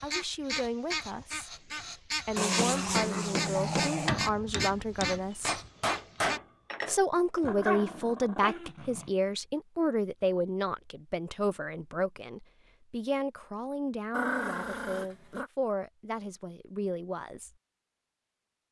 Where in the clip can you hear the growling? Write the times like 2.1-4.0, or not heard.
2.4-4.2, 7.4-9.1, 14.1-15.5.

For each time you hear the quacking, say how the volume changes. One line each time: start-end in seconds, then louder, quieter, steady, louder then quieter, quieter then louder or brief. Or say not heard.
0.0-6.4 steady.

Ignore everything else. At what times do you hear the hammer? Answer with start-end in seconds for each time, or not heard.
2.5-7.4.